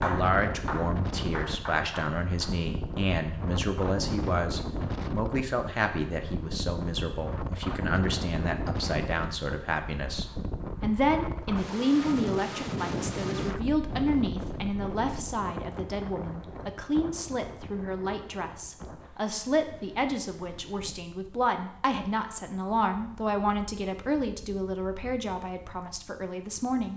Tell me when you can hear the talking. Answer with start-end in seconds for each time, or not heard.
0.0-26.9.